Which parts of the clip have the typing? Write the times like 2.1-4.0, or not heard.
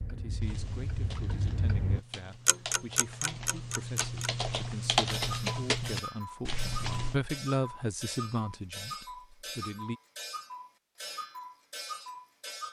0.4-7.2.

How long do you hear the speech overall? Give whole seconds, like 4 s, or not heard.
10 s.